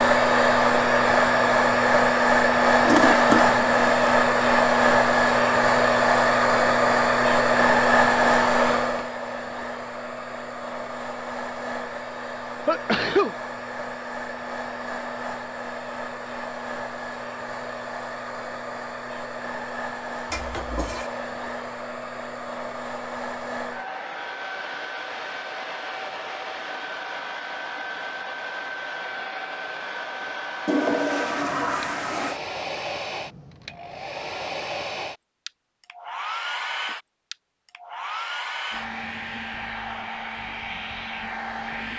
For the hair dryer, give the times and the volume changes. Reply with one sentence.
You can hear the hair dryer from 0.0 to 41.9 s, getting quieter.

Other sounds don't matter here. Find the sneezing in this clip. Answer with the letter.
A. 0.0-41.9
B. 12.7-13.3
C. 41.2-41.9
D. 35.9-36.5
B.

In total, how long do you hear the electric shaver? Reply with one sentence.
You can't hear the electric shaver here.